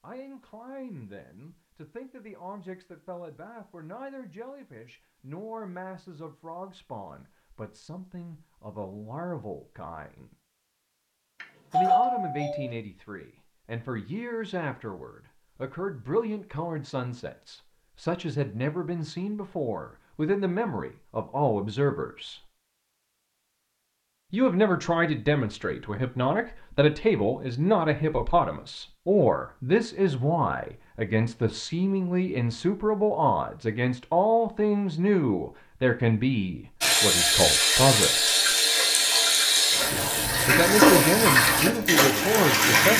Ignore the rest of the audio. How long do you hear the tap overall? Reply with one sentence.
You can hear the tap for 6 seconds altogether.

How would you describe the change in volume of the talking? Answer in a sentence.
The volume of the talking goes up.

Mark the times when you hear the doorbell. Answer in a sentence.
The doorbell can be heard from 11.4 to 12.7 s.